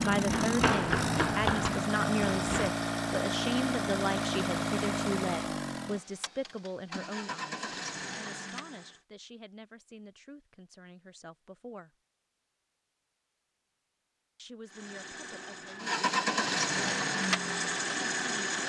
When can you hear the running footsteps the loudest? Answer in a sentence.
The loudest moment of the running footsteps is at 1 second.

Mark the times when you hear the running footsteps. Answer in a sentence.
You can hear the running footsteps from 0.0 to 2.7 s.